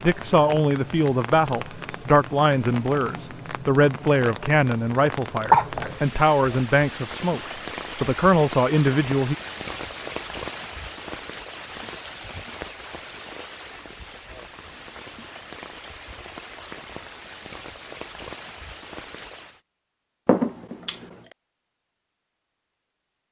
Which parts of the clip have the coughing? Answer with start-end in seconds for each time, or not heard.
5.5-6.0, 20.2-21.1.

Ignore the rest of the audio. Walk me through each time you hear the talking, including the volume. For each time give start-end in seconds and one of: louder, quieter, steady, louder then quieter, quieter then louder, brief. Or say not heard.
0.0-9.3 steady.